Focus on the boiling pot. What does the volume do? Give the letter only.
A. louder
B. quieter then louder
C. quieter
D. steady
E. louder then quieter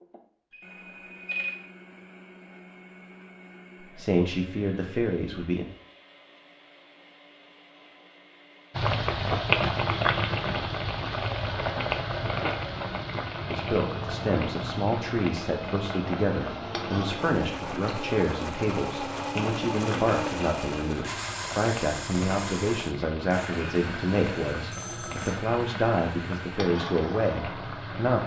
C.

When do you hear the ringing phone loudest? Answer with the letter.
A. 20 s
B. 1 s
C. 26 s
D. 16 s
B.